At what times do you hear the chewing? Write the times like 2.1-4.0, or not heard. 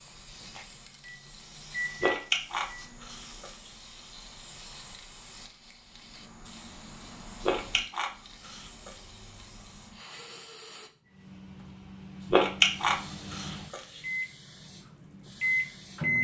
2.0-3.5, 7.4-8.9, 12.3-13.8.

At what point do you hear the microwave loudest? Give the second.
16 s.